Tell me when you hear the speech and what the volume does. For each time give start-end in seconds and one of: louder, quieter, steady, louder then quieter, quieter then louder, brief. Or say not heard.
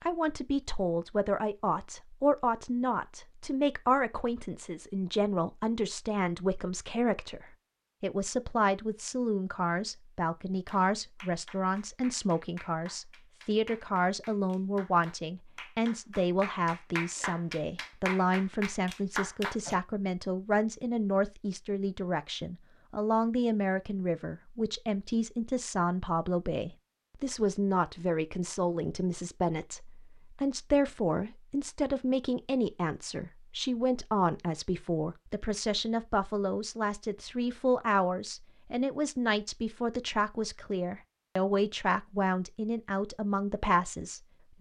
0.0-44.5 steady.